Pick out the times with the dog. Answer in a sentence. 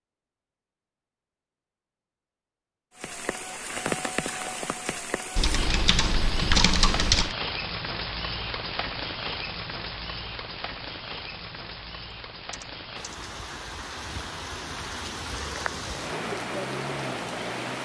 The dog can't be heard in this clip.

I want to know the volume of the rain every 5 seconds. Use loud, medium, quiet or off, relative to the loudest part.
loud, loud, medium, loud.